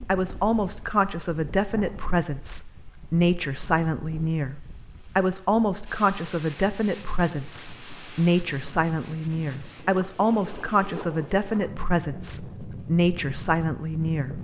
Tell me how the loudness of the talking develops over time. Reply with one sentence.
The volume of the talking stays about the same.